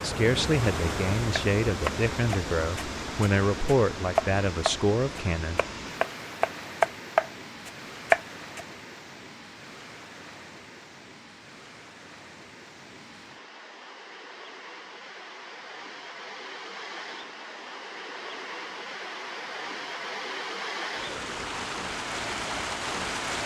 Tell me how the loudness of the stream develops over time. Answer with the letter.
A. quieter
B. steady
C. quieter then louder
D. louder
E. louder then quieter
C.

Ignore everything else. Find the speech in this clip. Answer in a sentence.
The speech can be heard from 0.0 to 5.6 s.